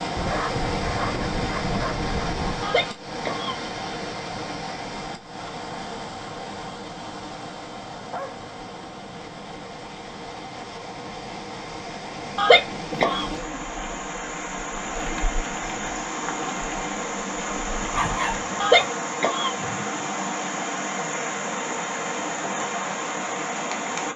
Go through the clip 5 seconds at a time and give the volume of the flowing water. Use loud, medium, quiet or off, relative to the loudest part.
loud, medium, medium, loud, loud.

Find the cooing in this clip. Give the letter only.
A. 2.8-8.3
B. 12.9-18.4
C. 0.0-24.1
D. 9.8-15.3
B.